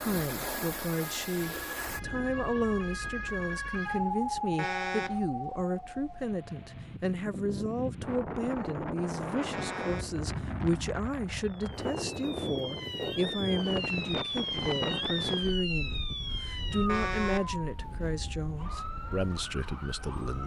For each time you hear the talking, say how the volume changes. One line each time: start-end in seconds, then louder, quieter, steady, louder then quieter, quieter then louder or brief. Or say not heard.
0.0-20.4 steady.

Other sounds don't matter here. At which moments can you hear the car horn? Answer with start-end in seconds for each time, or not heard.
4.5-5.2, 9.5-10.2, 16.9-17.5.